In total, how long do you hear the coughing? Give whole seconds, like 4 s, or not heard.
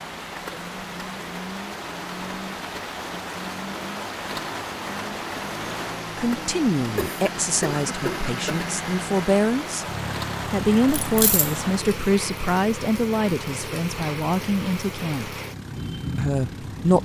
2 s.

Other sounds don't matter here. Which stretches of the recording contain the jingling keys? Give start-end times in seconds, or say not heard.
10.8-11.6.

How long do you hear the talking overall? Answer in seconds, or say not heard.
9 s.